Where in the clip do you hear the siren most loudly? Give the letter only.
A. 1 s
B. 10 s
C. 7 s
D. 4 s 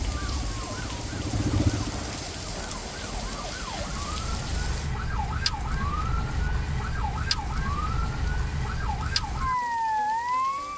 B.